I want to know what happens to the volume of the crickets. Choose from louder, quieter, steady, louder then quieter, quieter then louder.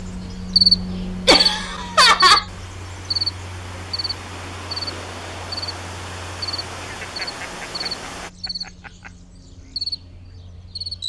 quieter.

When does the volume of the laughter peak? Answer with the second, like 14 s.
2 s.